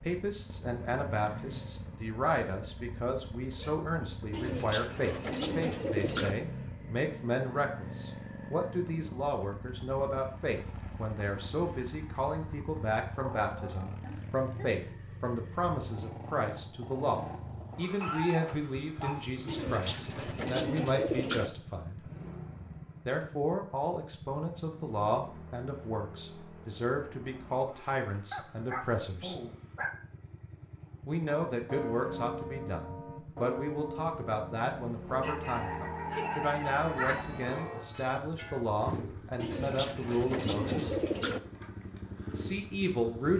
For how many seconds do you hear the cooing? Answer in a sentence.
The cooing can be heard for 6 seconds in total.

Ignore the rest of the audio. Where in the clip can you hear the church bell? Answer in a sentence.
The church bell can be heard from 31.2 to 38.6 s.